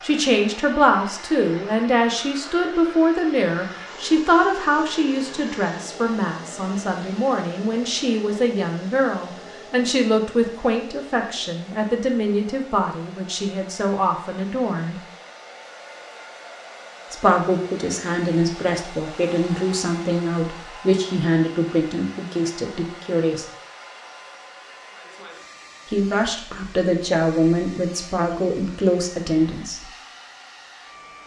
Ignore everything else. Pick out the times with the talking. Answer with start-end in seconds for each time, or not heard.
0.0-14.9, 17.1-23.4, 25.9-29.8.